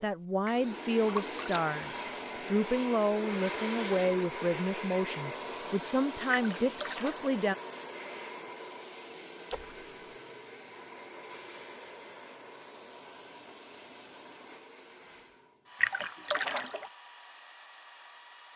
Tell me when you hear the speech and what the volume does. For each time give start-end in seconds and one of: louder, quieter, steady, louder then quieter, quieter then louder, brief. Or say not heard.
0.0-7.5 steady.